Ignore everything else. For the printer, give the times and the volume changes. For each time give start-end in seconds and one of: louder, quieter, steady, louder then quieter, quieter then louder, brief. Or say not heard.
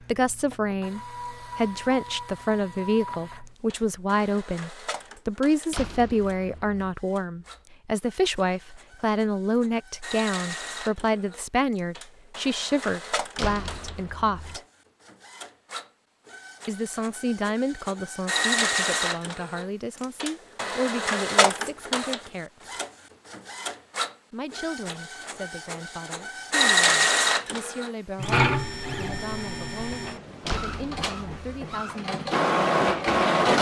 0.0-33.5 louder.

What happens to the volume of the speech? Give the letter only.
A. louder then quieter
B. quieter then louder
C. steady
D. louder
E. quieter
E.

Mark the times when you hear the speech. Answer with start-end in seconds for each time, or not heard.
0.1-14.6, 16.6-22.7, 24.3-32.3.